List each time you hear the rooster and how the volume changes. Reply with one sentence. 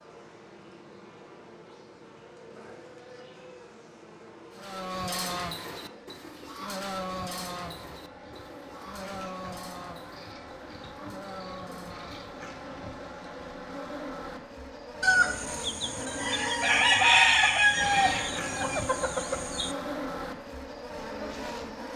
You can hear the rooster from 15.0 to 19.8 s, getting louder then quieter.